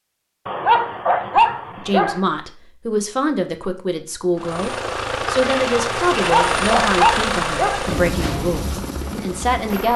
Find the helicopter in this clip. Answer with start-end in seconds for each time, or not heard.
4.3-9.9.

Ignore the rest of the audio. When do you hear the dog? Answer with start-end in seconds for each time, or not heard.
0.5-2.2, 6.2-7.8.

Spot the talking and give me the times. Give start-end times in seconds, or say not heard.
1.8-9.9.